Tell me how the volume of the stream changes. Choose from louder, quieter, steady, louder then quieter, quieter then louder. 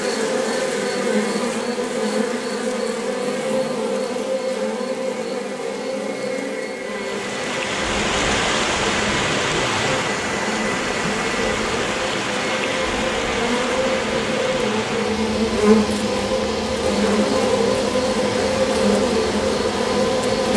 quieter.